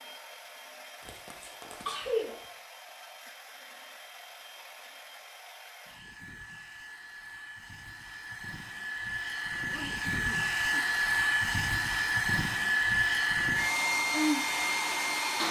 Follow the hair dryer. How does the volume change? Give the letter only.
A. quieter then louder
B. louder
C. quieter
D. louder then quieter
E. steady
B.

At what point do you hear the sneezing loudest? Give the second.
2 s.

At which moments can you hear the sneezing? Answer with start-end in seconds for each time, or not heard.
1.0-2.4, 9.7-10.9.